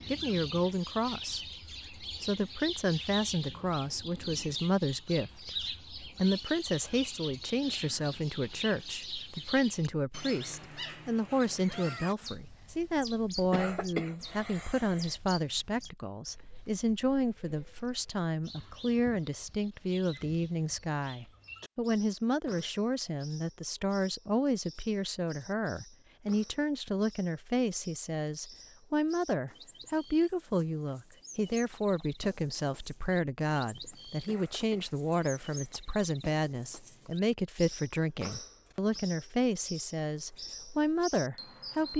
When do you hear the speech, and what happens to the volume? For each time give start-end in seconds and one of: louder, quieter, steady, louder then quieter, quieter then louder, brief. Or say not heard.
0.1-41.9 steady.